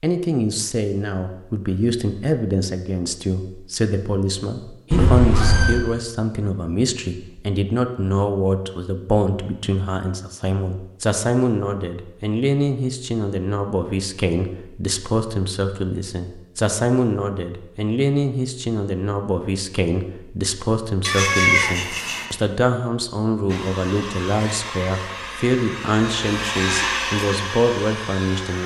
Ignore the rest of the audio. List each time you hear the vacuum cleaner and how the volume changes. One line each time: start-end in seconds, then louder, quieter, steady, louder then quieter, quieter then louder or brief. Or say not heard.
23.4-28.6 louder then quieter.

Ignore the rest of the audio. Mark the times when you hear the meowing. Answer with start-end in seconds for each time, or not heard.
4.9-5.8, 21.0-22.2.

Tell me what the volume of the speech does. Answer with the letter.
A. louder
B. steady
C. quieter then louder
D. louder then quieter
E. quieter
B.